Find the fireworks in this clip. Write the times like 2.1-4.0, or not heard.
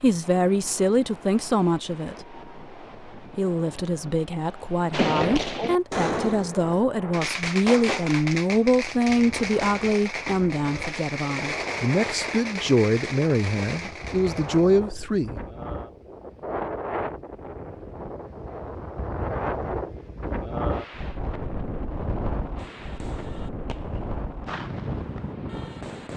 4.9-14.7, 22.6-26.1.